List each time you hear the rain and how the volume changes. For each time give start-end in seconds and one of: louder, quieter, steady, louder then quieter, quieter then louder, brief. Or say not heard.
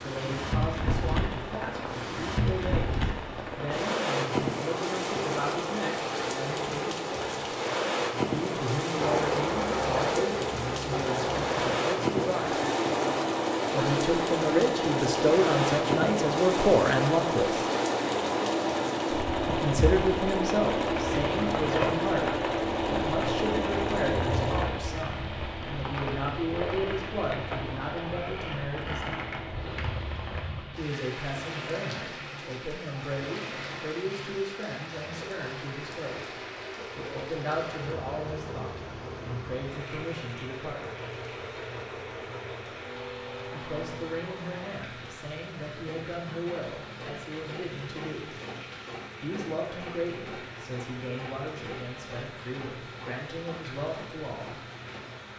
0.0-55.3 quieter.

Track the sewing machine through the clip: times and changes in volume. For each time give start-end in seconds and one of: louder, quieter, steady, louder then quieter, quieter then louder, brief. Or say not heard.
8.9-55.3 quieter.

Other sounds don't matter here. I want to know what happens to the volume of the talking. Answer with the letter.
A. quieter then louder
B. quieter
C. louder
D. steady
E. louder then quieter
E.